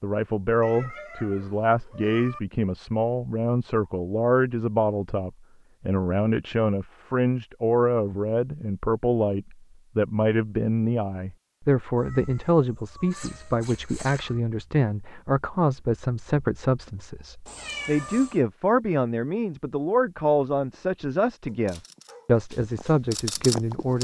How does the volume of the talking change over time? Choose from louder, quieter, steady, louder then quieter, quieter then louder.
steady.